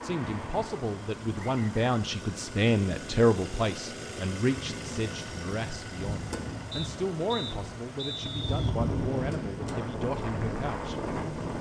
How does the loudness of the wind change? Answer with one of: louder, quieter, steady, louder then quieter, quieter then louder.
louder.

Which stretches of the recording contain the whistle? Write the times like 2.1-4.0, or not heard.
1.4-1.9, 6.7-8.7.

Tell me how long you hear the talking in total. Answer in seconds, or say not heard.
11 s.